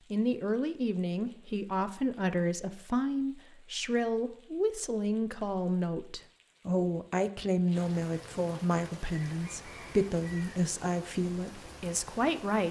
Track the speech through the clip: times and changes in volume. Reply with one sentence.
You can hear the speech from 0.1 to 12.6 s, at a steady volume.